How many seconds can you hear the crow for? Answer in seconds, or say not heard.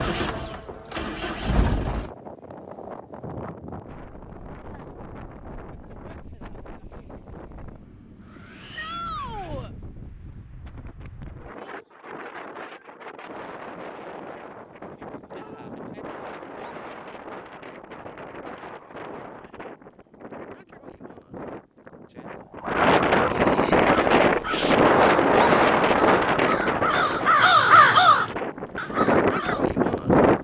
6 s.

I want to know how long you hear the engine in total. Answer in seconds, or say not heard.
2 s.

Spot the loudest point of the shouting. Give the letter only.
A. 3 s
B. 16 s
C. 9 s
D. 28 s
C.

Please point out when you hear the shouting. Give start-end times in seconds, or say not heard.
8.8-9.7, 15.3-15.8.